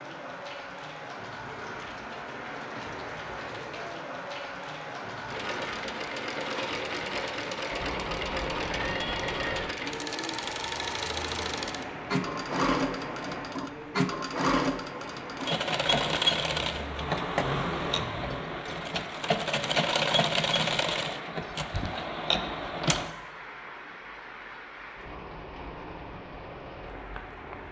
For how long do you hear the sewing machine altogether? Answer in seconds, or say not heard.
18 s.